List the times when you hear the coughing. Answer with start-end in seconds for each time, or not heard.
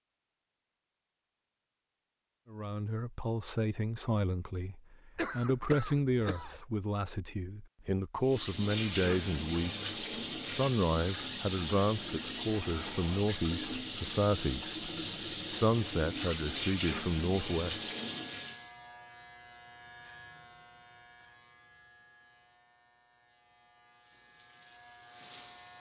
5.2-6.6.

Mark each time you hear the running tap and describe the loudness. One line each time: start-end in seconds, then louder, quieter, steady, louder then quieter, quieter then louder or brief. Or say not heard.
8.2-18.7 steady
23.9-25.7 brief.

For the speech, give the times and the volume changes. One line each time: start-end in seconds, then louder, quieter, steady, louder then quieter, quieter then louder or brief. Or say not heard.
2.5-17.9 steady.